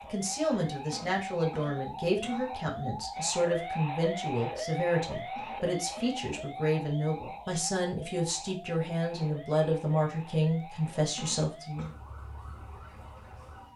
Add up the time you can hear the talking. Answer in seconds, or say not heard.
12 s.